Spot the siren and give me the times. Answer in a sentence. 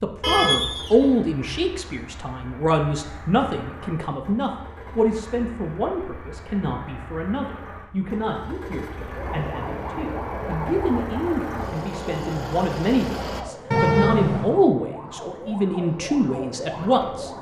You can hear the siren from 9.0 to 17.3 s.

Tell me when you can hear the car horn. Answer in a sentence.
You can hear the car horn from 0.2 to 1.1 s and from 13.7 to 14.6 s.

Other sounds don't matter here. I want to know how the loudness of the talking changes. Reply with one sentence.
The volume of the talking goes down, then up.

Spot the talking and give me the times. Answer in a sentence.
You can hear the talking from 0.0 to 17.3 s.